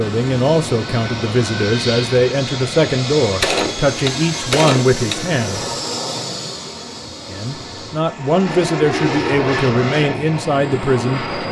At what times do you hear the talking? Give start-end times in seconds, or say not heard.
0.0-5.6, 7.3-11.2.